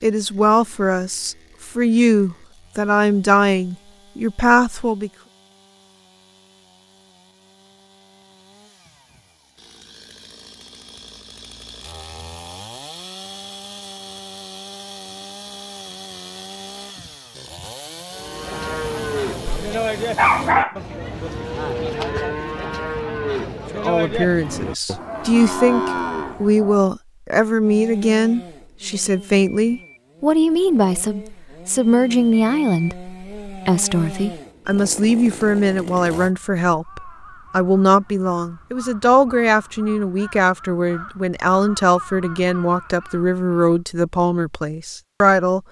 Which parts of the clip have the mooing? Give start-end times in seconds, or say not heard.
18.1-26.9.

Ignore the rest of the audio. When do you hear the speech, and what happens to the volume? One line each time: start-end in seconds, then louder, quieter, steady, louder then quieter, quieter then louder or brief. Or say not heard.
0.0-5.1 steady
23.7-45.6 steady.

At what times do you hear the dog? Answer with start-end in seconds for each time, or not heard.
19.4-20.8.